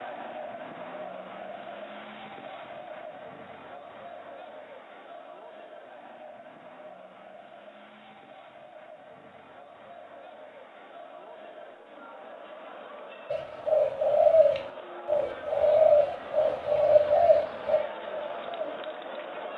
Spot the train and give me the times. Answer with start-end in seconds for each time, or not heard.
not heard.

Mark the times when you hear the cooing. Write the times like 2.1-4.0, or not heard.
13.3-18.8.